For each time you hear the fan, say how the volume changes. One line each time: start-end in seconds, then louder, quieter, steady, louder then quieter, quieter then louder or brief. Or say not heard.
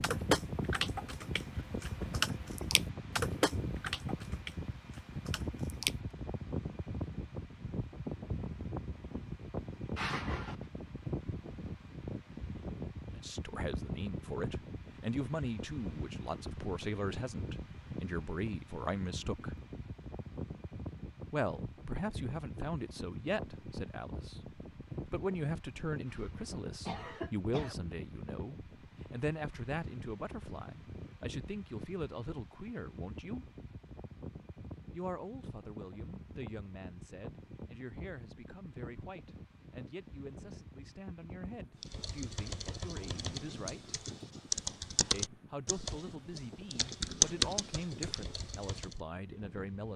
0.0-49.9 quieter.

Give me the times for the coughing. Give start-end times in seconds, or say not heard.
9.9-10.7, 26.1-27.8.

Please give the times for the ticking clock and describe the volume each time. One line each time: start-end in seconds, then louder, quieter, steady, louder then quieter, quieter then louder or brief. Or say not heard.
not heard.